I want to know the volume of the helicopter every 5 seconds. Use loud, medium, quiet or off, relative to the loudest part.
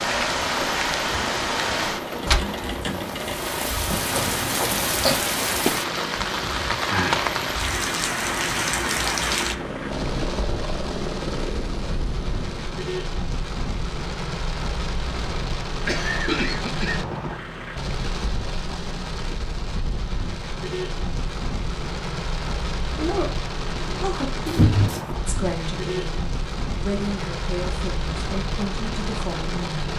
loud, loud, loud, off, off, off.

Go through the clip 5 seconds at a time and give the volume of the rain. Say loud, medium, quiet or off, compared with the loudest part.
loud, loud, medium, medium, medium, medium.